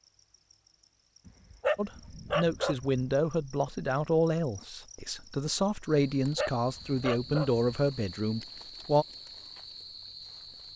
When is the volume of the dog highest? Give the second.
2 s.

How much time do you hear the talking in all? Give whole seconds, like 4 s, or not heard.
7 s.